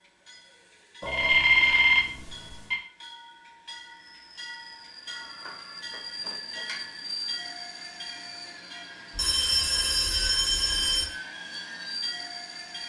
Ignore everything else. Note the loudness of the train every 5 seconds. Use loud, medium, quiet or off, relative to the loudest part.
medium, loud, loud.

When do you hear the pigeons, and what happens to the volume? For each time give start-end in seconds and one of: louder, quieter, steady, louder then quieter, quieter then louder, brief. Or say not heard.
not heard.